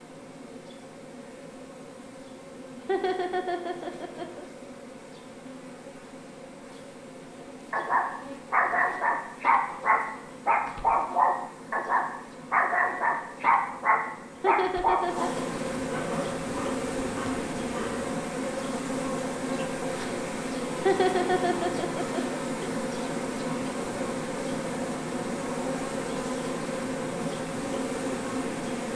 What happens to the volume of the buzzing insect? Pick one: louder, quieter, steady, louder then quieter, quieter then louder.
louder.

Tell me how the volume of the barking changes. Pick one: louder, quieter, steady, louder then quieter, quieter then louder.
quieter.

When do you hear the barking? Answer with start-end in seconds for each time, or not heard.
7.7-18.1.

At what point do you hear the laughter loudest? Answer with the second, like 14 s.
21 s.